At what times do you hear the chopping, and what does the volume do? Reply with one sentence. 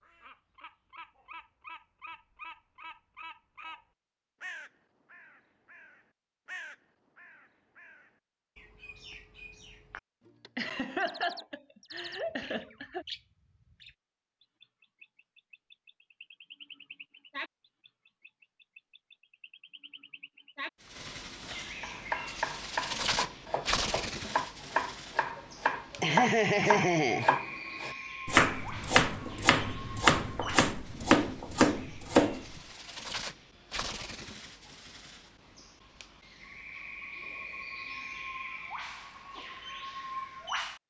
You can hear the chopping from 21.8 to 32.6 s, getting louder.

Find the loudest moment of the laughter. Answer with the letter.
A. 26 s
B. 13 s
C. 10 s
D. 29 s
A.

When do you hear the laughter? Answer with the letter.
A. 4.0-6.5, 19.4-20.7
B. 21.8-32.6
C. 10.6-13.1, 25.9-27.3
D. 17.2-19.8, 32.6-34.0
C.